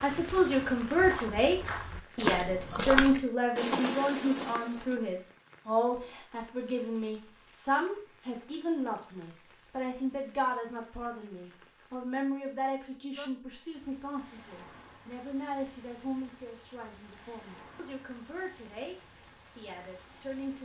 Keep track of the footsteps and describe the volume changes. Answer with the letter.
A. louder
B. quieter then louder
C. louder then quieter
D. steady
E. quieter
C.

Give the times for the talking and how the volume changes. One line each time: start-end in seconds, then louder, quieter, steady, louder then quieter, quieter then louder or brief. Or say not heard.
0.0-18.9 quieter
19.6-20.6 brief.